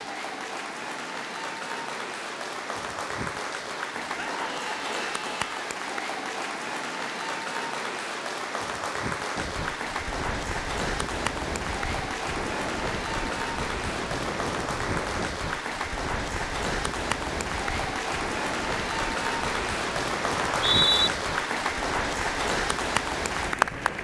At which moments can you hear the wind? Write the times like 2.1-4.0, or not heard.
9.3-23.9.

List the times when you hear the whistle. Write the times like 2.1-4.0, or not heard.
20.4-21.1.